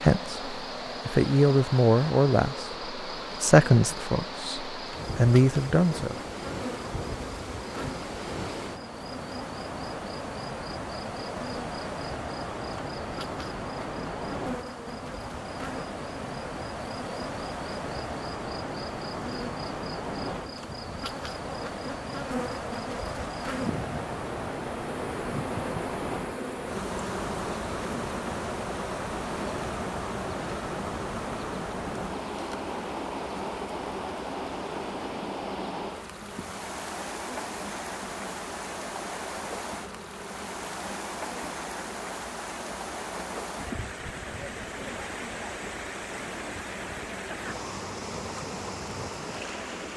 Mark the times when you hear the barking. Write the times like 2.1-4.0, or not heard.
not heard.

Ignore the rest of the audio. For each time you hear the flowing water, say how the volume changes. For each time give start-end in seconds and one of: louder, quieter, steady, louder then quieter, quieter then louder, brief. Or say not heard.
0.0-49.9 steady.